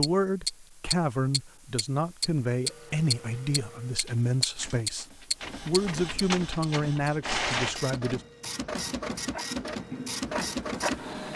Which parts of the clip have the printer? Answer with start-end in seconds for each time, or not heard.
2.6-11.3.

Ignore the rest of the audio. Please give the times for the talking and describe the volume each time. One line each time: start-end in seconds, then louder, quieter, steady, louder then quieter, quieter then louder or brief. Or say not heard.
0.0-8.2 steady.